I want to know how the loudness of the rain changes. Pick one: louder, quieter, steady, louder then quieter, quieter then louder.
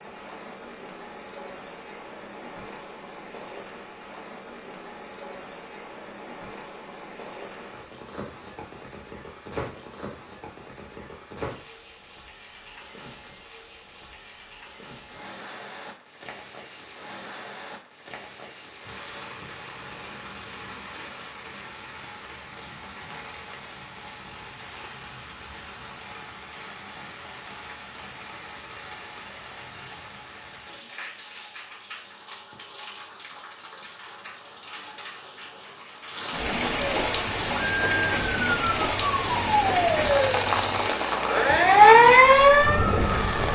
louder.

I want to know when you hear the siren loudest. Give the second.
42 s.